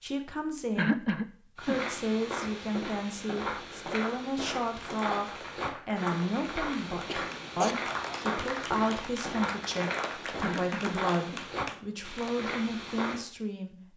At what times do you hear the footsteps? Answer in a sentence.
You can hear the footsteps from 1.6 to 13.2 s.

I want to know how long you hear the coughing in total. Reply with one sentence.
You can hear the coughing for 3 seconds altogether.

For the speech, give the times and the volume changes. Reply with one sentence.
The speech can be heard from 0.0 to 13.8 s, at a steady volume.